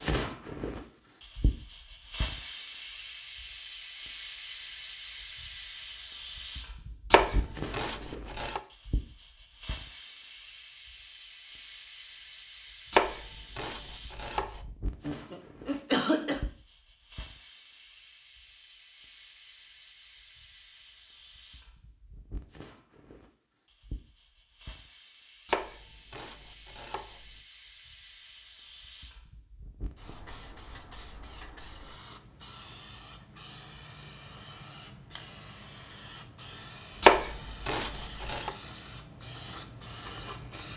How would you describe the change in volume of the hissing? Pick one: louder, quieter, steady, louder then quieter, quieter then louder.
quieter then louder.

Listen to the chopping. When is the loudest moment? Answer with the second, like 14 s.
37 s.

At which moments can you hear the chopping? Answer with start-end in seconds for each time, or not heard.
7.1-8.6, 12.9-14.6, 25.4-27.2, 37.0-38.5.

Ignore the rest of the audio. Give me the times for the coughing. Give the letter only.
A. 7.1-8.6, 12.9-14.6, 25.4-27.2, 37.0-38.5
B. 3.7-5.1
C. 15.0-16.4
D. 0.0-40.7
C.